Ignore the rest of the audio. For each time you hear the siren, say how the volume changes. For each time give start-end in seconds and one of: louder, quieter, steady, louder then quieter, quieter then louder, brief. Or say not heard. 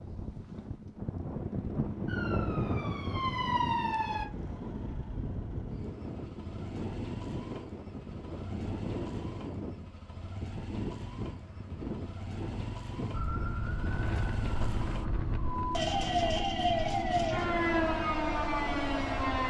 2.0-4.3 brief
13.1-19.4 louder.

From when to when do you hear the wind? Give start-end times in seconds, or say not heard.
0.0-16.4.